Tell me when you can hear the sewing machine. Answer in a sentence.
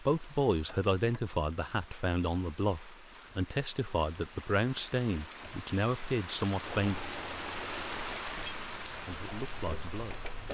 You can hear the sewing machine from 6.7 to 10.4 s.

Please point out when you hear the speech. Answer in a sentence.
The speech can be heard from 0.0 to 7.0 s and from 8.9 to 10.3 s.